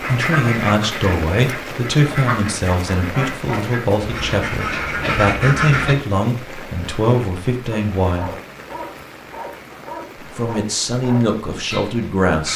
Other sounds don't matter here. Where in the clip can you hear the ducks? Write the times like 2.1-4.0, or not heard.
0.0-6.0.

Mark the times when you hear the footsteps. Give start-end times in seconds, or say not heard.
not heard.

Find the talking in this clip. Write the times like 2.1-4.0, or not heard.
0.0-8.3, 10.2-12.5.